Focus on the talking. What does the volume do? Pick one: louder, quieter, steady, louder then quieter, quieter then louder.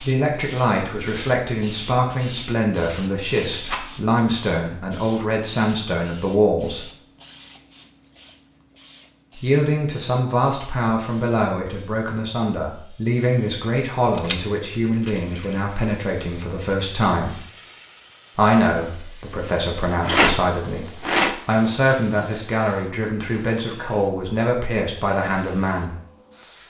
steady.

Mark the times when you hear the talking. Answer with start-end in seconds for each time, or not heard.
0.0-6.9, 9.3-17.4, 18.4-25.9.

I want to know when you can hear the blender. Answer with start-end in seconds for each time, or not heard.
not heard.